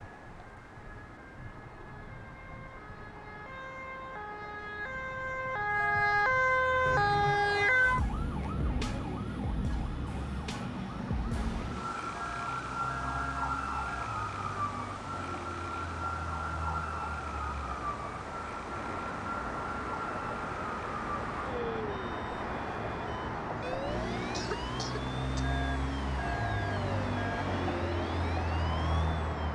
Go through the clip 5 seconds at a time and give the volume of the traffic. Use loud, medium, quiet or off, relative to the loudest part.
quiet, quiet, medium, medium, loud, loud.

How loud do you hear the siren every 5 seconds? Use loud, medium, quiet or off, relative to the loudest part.
quiet, loud, medium, medium, quiet, quiet.